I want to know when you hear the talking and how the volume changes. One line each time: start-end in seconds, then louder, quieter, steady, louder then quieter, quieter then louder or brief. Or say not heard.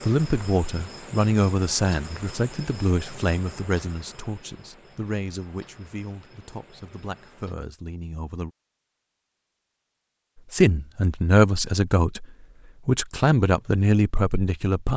0.0-8.5 quieter
10.5-12.2 brief
12.8-14.9 brief.